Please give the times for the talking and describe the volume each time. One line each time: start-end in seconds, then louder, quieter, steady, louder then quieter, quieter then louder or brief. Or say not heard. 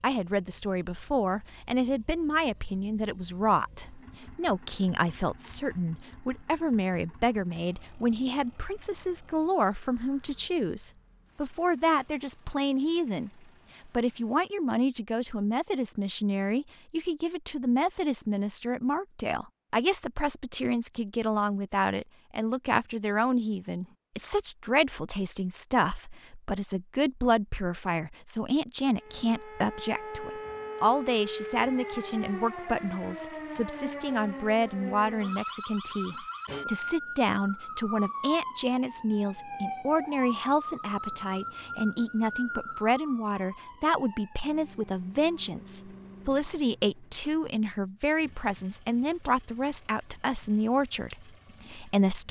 0.0-52.2 steady.